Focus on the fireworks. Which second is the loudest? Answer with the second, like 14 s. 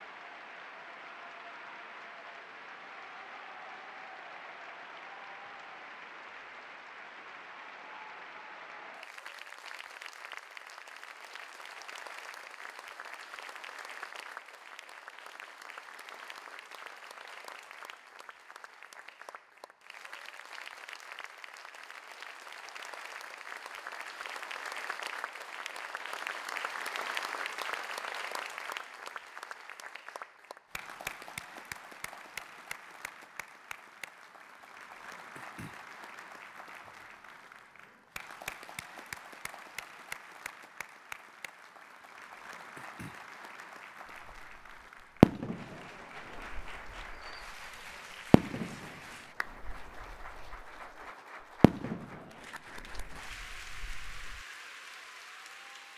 45 s.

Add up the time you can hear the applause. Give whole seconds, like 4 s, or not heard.
56 s.